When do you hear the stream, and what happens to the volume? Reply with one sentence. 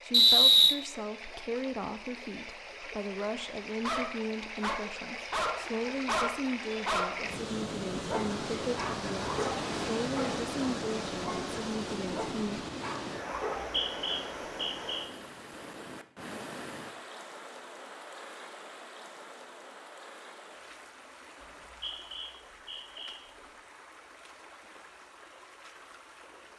The stream can be heard from 0.0 to 26.5 s, getting louder then quieter.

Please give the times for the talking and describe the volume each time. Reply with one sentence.
The talking can be heard from 0.0 to 12.7 s, at a steady volume.